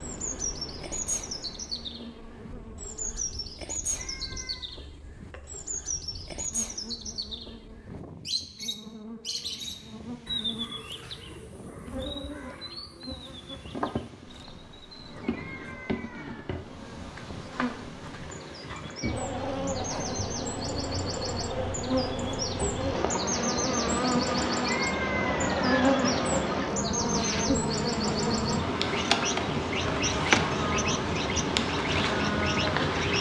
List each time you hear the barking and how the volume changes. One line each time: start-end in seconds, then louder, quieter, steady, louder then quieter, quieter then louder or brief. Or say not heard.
not heard.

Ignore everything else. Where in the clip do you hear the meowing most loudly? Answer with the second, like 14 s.
25 s.